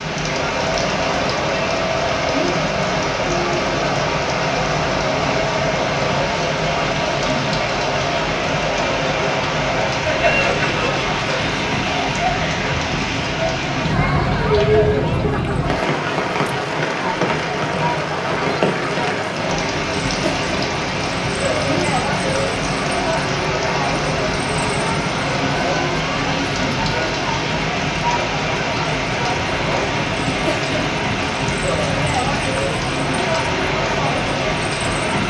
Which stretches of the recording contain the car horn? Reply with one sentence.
You can't hear the car horn here.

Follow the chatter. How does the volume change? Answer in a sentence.
The loudness of the chatter stays about the same.